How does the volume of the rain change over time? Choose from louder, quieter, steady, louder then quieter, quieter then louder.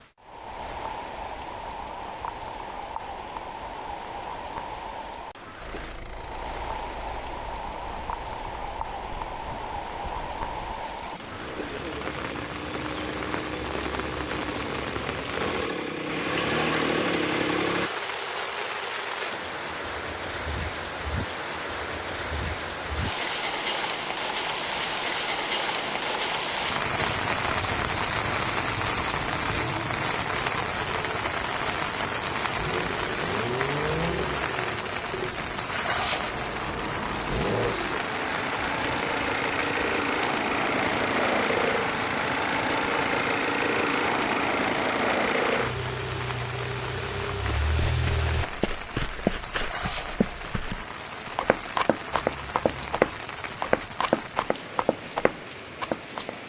louder then quieter.